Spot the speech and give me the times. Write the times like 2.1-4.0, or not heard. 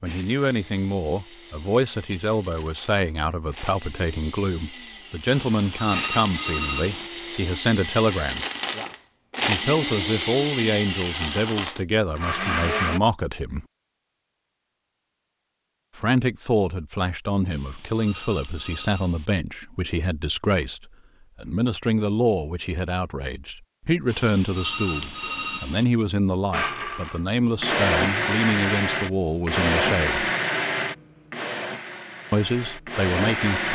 0.0-8.4, 9.4-13.7, 15.9-30.2, 32.3-33.7.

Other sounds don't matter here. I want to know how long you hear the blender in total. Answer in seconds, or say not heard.
20 s.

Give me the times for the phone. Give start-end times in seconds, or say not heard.
5.3-7.1, 17.5-19.3, 24.1-25.9.